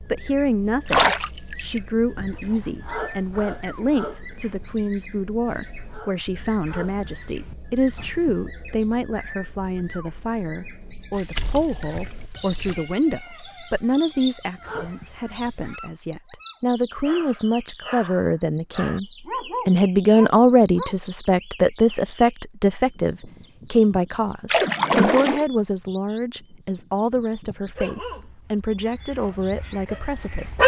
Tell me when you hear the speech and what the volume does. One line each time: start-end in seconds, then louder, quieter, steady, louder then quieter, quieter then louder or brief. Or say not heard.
0.1-19.1 steady
19.6-30.6 quieter.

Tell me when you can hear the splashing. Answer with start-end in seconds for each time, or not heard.
0.8-1.8, 11.1-12.8, 24.4-25.4.